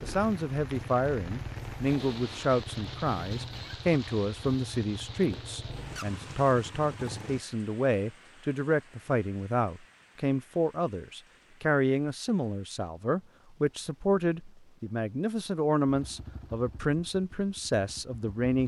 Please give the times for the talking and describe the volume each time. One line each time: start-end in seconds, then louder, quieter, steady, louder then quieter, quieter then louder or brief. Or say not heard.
0.0-18.6 steady.